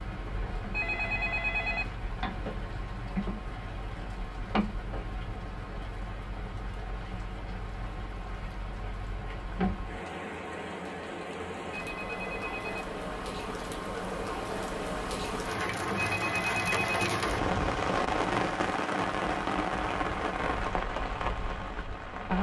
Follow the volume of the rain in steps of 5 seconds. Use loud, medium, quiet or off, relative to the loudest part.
medium, medium, medium, loud, loud.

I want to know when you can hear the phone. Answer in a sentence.
The phone can be heard from 0.7 to 1.9 s, from 11.7 to 12.8 s and from 15.9 to 17.1 s.